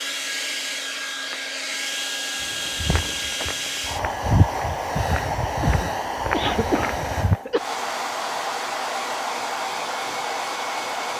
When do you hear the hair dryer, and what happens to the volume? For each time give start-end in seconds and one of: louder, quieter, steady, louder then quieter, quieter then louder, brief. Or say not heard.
0.0-11.1 steady.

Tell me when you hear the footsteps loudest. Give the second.
4 s.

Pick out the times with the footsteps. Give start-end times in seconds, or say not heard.
2.4-7.4.